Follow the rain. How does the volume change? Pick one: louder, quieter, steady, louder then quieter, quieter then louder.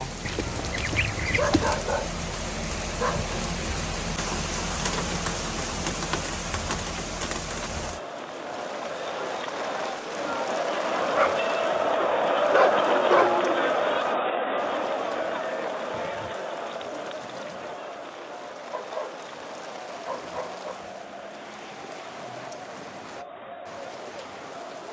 quieter.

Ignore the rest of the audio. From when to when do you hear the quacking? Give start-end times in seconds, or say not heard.
0.2-1.8.